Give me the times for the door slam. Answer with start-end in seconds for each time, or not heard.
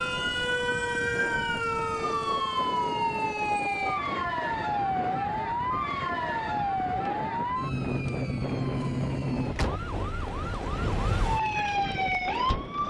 not heard.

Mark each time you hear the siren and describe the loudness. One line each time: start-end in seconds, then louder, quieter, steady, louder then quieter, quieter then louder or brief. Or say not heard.
0.0-12.8 steady.